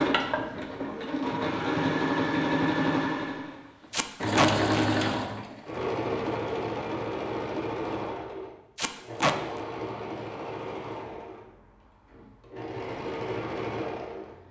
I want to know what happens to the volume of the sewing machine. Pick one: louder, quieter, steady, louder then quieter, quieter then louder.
quieter.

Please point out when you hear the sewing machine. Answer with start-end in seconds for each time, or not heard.
0.0-14.4.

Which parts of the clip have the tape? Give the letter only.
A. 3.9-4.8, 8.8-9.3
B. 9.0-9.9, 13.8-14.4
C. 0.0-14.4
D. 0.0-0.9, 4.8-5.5
A.